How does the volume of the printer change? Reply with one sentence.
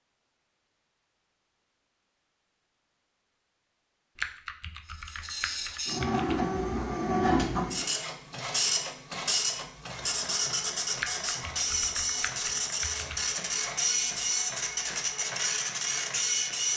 The volume of the printer stays about the same.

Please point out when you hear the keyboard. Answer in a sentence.
You can hear the keyboard from 4.2 to 6.4 s and from 10.9 to 13.3 s.